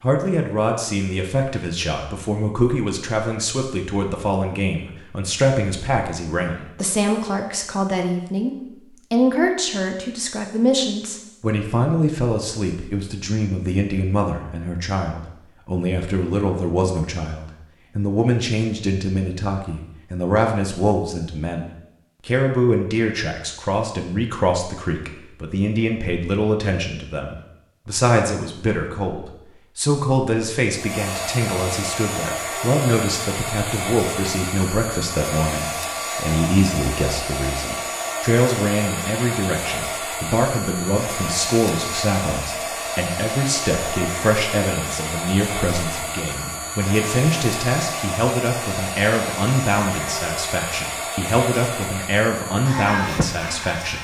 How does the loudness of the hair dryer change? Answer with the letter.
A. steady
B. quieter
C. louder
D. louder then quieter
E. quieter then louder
A.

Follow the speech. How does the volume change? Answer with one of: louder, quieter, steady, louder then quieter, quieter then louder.
steady.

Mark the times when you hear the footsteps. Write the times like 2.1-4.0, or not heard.
not heard.